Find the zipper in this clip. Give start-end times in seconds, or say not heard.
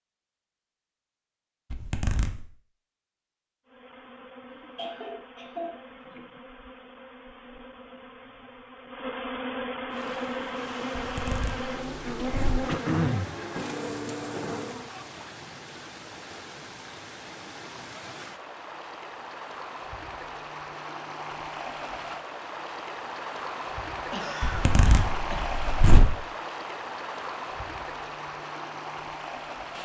1.7-2.5, 10.9-12.7, 24.4-26.1.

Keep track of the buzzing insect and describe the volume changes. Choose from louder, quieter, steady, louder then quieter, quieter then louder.
louder.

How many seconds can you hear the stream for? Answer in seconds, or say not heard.
20 s.